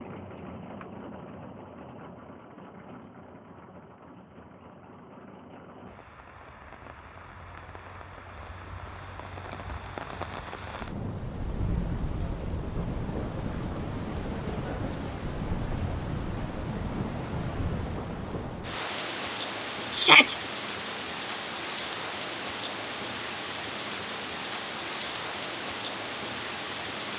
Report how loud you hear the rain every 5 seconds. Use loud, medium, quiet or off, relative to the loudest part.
medium, medium, loud, loud, loud, loud.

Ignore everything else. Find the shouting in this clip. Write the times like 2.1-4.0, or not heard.
19.9-20.4.